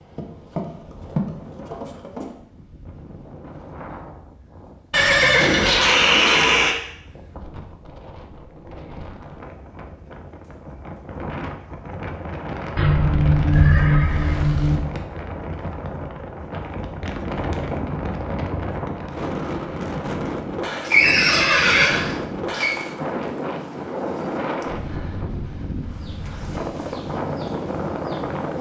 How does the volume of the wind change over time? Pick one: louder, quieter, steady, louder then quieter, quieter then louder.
louder.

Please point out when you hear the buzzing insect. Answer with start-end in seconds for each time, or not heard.
0.0-2.4, 25.9-28.5.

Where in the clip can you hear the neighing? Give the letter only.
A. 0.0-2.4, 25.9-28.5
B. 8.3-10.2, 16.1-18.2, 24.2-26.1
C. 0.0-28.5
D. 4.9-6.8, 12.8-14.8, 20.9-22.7
D.